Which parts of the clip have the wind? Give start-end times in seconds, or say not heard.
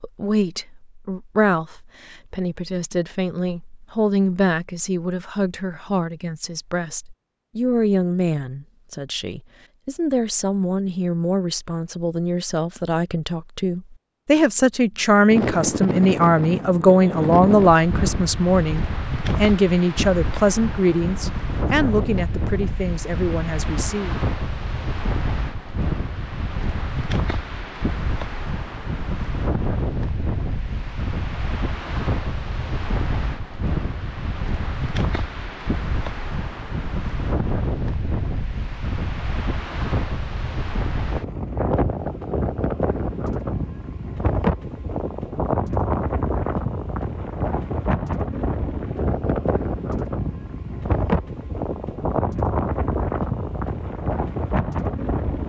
15.3-55.4.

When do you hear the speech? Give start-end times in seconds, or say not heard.
0.0-24.1.